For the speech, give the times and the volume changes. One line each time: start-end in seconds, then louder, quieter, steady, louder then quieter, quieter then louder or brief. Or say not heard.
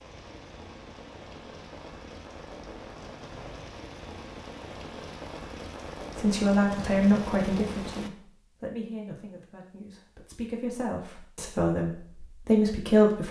6.2-13.2 quieter then louder.